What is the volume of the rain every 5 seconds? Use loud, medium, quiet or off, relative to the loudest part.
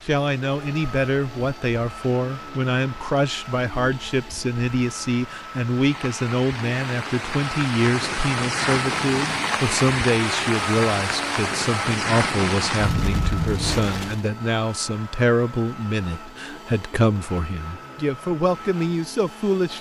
quiet, loud, loud, off.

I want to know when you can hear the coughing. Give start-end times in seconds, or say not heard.
not heard.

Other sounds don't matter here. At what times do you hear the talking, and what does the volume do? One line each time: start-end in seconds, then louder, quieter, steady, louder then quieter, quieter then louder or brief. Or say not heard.
0.1-19.7 steady.